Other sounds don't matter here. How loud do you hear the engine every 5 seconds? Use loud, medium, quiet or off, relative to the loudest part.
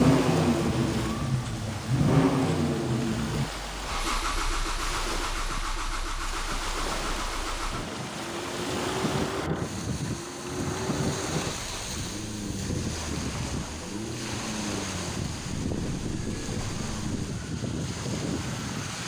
loud, medium, medium, quiet.